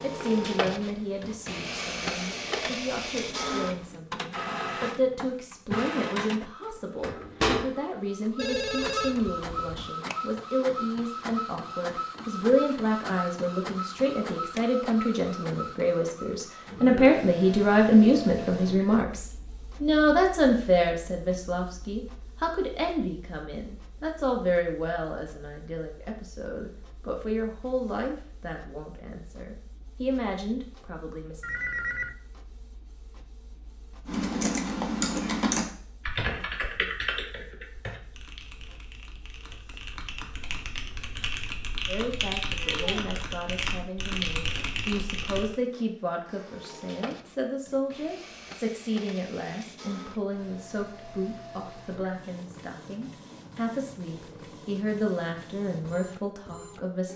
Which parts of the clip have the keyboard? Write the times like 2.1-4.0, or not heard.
34.0-45.5.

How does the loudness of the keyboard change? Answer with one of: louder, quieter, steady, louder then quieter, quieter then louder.
quieter then louder.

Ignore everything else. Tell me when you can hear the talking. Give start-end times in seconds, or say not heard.
0.0-31.4, 41.9-57.1.